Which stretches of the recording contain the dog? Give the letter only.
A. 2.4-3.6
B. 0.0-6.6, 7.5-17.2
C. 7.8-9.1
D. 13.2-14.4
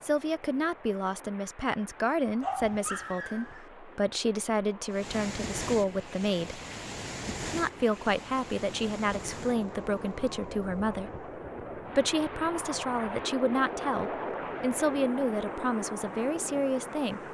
A.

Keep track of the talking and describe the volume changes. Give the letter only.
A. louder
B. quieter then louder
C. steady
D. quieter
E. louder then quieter
C.